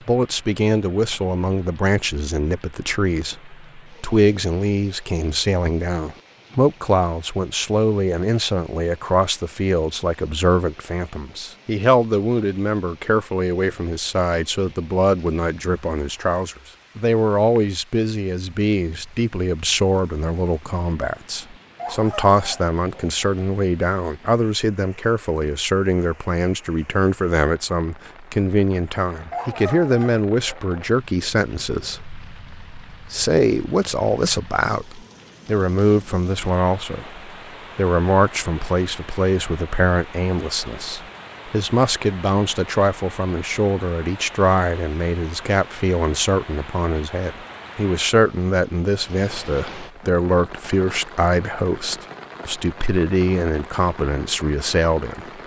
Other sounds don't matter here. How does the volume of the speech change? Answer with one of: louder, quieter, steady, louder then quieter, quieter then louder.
steady.